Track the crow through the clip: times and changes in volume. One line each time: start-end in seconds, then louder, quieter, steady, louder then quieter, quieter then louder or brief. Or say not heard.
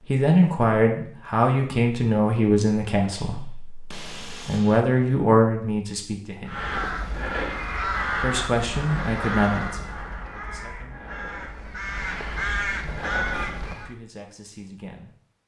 6.5-13.9 quieter then louder.